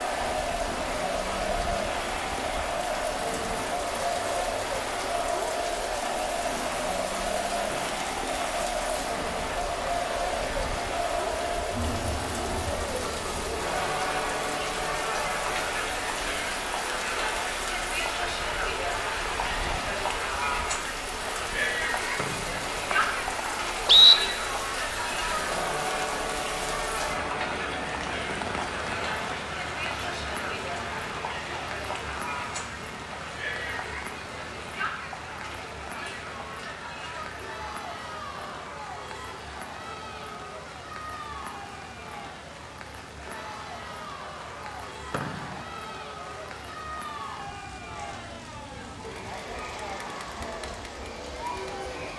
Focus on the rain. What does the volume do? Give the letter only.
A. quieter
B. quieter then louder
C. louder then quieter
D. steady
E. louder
A.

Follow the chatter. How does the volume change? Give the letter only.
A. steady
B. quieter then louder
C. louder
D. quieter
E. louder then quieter
D.